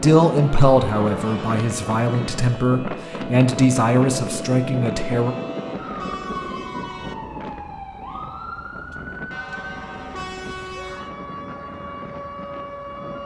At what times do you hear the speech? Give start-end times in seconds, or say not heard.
0.0-5.3.